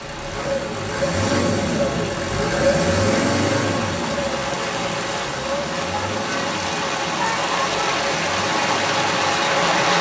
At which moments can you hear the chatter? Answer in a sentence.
You can't hear the chatter here.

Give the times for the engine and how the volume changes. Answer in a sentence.
You can hear the engine from 0.0 to 9.7 s, getting quieter.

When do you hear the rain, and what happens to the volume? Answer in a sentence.
You can hear the rain from 0.0 to 9.9 s, getting louder.